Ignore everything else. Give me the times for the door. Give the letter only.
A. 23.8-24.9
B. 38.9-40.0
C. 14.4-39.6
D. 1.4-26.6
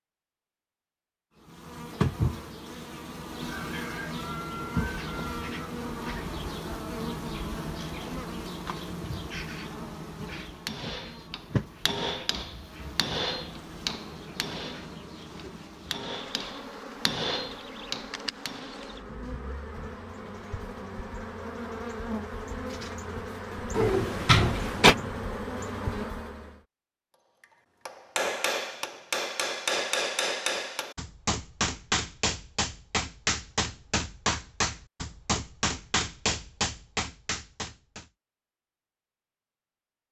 A.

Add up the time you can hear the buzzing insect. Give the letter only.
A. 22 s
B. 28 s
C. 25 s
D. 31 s
C.